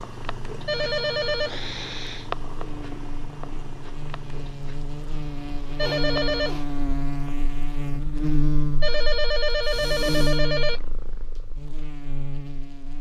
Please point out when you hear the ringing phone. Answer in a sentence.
You can hear the ringing phone from 0.7 to 1.5 s, from 5.8 to 6.5 s and from 8.8 to 10.8 s.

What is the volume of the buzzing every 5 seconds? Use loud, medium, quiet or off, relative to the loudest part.
medium, loud, loud.